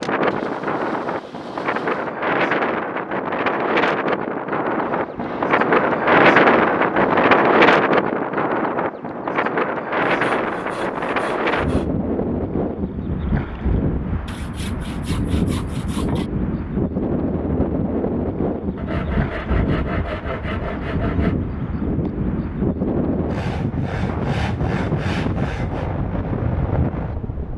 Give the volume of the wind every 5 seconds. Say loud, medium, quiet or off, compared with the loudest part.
medium, loud, medium, medium, medium, medium.